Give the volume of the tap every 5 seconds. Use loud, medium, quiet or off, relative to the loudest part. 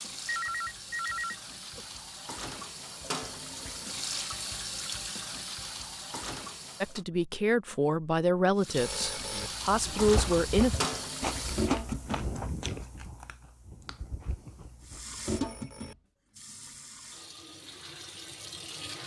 medium, medium, loud, medium.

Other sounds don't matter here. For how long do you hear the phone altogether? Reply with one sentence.
The phone can be heard for 3 seconds in total.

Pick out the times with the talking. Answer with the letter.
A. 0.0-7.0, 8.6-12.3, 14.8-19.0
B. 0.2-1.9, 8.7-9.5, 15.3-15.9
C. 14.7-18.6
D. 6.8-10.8
D.